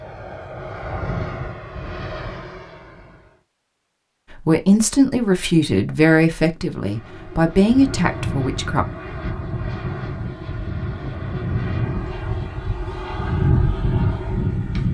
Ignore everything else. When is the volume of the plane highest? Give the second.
14 s.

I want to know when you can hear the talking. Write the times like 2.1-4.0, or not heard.
4.4-8.8.